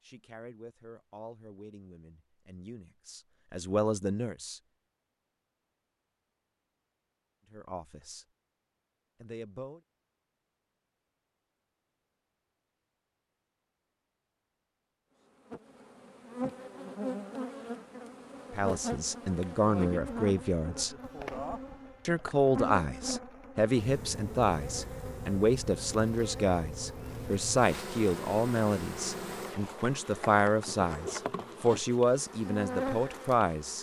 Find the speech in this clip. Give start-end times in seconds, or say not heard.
0.0-4.6, 7.5-8.2, 9.2-9.8, 18.5-20.9, 22.1-33.7.